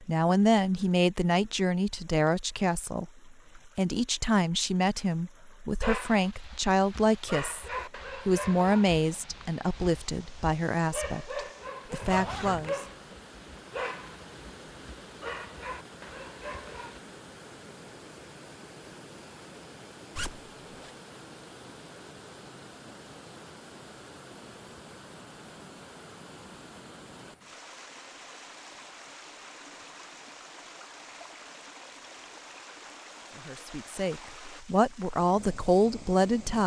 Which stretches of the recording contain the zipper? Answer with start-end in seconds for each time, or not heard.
12.0-12.8, 20.1-20.9.